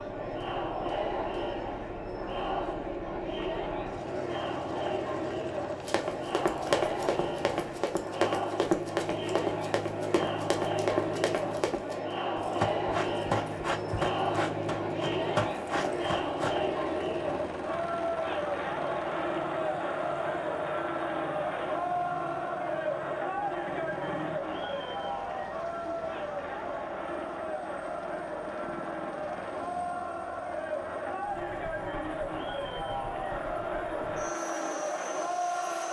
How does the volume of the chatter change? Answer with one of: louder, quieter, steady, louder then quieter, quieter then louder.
steady.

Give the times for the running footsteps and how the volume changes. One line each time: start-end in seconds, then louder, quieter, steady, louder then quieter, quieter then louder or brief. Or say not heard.
5.8-16.6 steady.